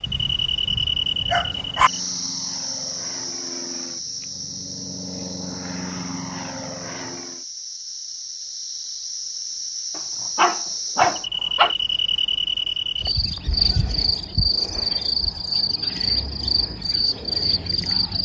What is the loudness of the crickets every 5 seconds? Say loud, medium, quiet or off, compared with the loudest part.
loud, medium, loud, loud.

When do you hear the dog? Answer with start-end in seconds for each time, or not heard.
0.1-1.9, 9.9-11.8.